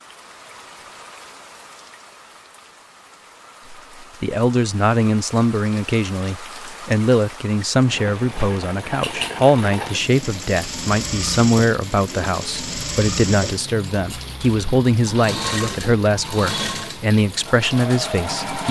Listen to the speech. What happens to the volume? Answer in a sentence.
The volume of the speech stays about the same.